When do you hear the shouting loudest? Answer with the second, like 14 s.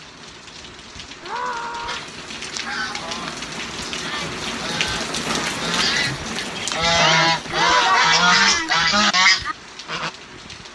8 s.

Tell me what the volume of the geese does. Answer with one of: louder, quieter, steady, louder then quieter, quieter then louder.
louder.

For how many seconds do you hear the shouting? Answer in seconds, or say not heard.
2 s.